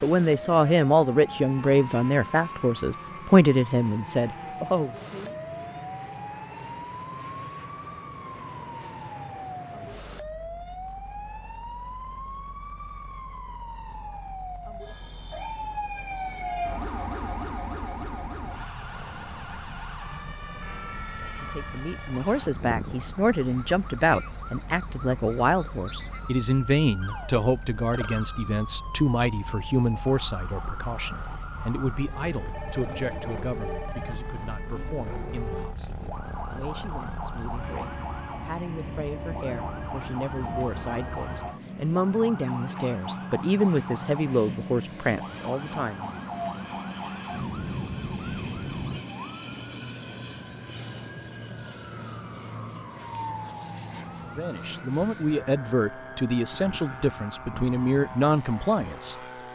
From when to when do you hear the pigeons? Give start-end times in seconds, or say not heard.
not heard.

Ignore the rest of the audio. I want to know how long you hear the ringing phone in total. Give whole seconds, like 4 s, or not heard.
2 s.